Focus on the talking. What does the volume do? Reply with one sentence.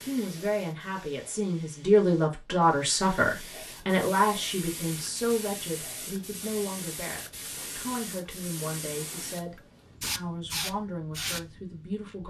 The loudness of the talking goes down.